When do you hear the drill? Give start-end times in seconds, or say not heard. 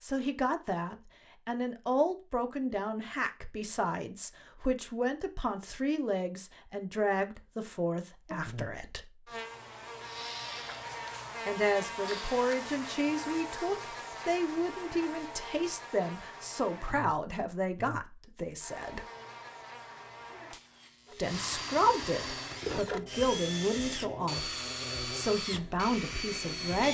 9.9-12.4, 21.1-26.8.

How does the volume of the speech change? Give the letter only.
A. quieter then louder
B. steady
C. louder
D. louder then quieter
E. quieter
B.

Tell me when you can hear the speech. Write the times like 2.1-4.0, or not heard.
0.0-9.1, 11.4-19.1, 21.1-26.8.